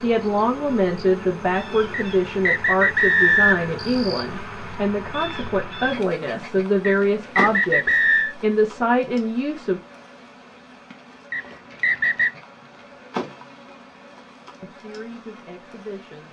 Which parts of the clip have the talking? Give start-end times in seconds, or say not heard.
0.0-9.8, 14.6-16.2.